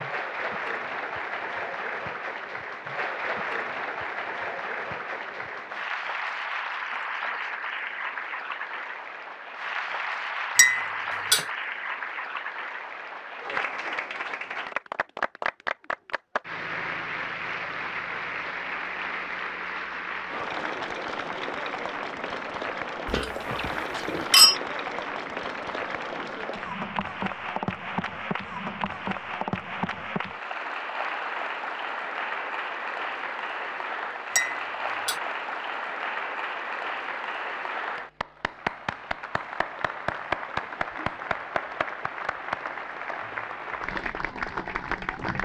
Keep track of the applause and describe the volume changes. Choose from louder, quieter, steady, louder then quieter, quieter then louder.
steady.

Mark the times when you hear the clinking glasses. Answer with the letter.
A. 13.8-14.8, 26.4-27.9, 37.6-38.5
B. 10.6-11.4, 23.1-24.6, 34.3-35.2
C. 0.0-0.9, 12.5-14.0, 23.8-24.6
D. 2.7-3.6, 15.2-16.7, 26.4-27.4
B.